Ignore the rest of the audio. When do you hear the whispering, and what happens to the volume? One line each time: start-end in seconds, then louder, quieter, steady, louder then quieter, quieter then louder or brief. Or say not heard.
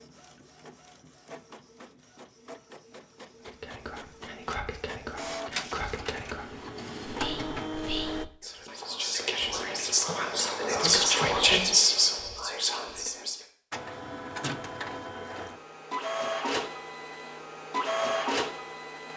3.5-13.4 louder.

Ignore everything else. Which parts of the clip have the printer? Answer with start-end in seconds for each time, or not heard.
0.0-8.2, 13.7-19.1.